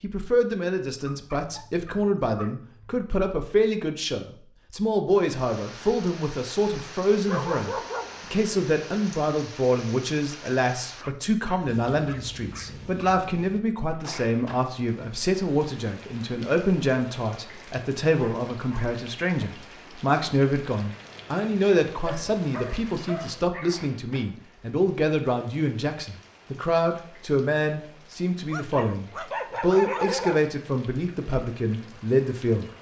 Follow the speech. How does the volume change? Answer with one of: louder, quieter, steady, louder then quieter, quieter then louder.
steady.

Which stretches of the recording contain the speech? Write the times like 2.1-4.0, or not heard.
0.0-32.6.